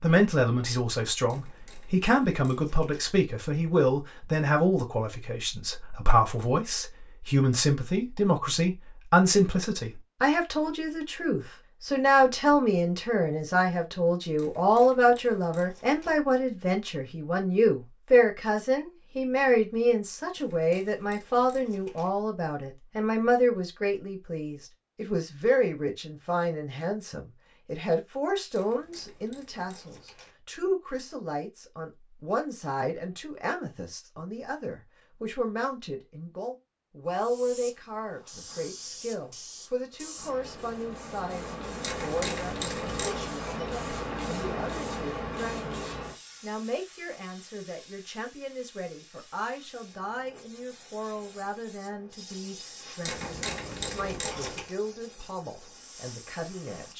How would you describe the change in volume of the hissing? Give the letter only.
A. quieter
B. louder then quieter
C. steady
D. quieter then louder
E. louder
B.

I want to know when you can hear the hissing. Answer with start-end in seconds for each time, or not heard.
37.0-56.9.